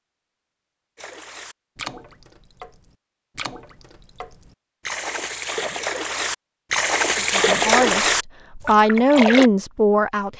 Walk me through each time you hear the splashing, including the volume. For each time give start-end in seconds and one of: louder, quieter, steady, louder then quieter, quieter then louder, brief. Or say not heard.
0.9-9.5 louder.